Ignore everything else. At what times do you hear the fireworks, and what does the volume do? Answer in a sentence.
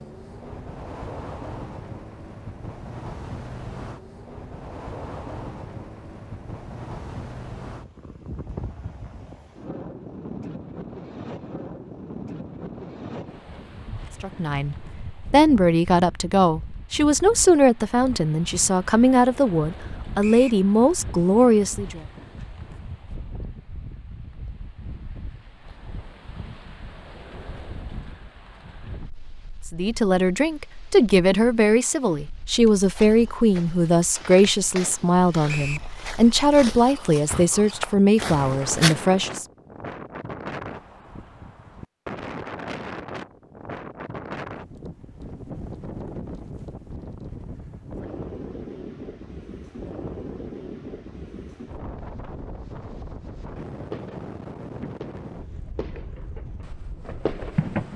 The fireworks can be heard from 53.9 to 57.9 s, getting quieter then louder.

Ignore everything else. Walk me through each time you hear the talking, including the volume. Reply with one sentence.
The talking can be heard from 14.2 to 22.0 s, at a steady volume; and from 29.7 to 39.5 s, at a steady volume.